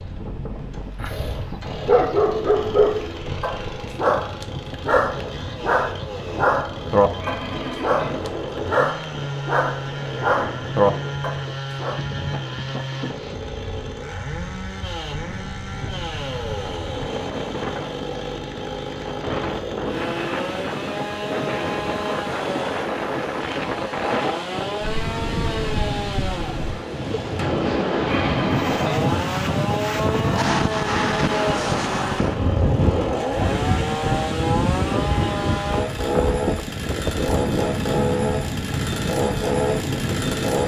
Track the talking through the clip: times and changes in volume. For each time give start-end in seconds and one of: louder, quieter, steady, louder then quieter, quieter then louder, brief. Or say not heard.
not heard.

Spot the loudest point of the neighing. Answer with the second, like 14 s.
29 s.